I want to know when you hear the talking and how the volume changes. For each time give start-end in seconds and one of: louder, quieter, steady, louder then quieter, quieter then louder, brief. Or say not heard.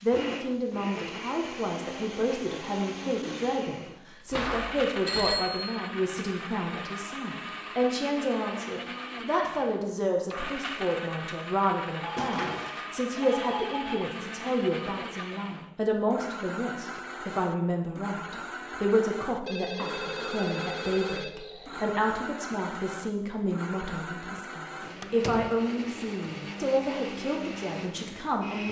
0.0-28.6 steady.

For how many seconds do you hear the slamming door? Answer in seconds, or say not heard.
3 s.